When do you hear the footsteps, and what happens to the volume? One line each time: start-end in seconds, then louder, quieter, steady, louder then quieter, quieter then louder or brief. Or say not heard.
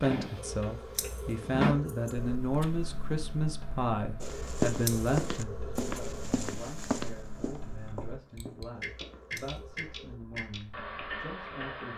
4.2-11.1 quieter.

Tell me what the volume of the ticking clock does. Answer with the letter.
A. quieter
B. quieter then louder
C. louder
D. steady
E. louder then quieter
B.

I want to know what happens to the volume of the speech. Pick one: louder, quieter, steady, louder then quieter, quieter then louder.
quieter.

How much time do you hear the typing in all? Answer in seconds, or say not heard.
not heard.